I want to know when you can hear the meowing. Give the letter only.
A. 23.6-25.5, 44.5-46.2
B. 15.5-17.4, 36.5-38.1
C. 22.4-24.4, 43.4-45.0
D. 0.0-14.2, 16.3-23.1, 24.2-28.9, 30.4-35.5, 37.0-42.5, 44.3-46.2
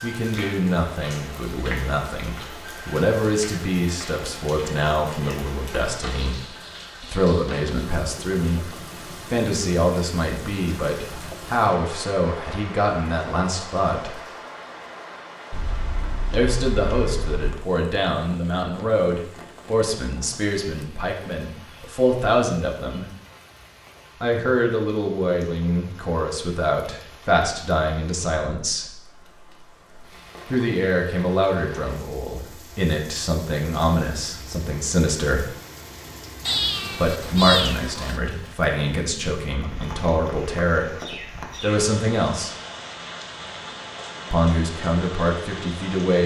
B.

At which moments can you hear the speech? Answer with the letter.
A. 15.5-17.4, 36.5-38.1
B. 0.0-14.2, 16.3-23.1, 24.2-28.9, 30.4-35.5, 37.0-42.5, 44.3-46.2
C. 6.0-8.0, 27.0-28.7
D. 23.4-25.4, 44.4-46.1
B.